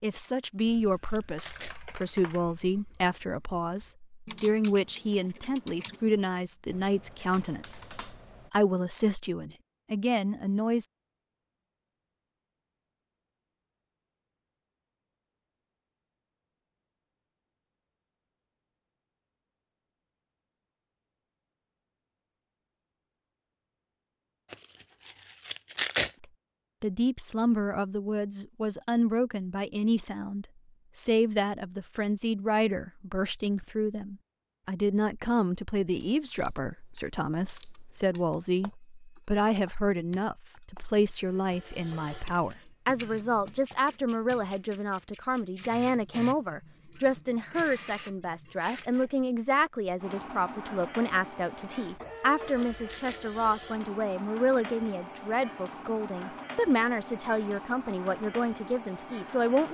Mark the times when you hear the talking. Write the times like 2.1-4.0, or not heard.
0.0-10.8, 26.2-59.6.